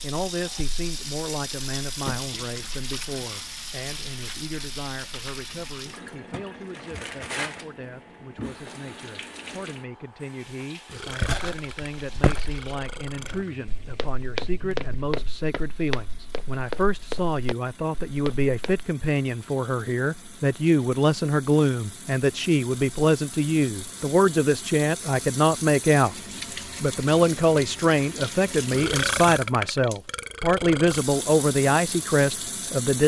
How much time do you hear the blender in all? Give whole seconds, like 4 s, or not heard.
not heard.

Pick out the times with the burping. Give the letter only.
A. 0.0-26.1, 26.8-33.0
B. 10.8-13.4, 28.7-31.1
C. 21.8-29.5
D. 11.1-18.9
B.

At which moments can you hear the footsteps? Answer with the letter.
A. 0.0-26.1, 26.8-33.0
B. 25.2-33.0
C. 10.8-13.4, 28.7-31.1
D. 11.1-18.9
D.